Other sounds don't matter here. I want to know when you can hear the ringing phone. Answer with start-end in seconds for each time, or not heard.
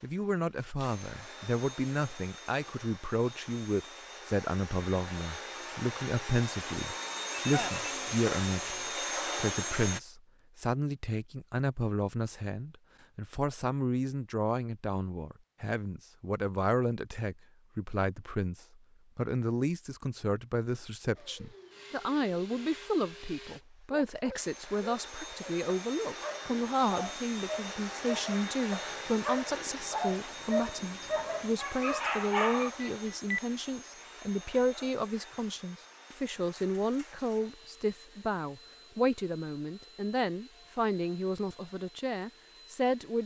7.3-8.0, 32.8-33.4.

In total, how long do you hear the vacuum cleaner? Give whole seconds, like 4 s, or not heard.
32 s.